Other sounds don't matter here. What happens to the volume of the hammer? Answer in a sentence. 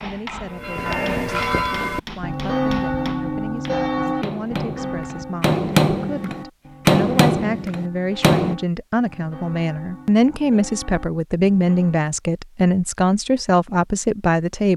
The volume of the hammer goes up.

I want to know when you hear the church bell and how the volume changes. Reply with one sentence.
The church bell can be heard from 0.5 to 12.2 s, getting quieter.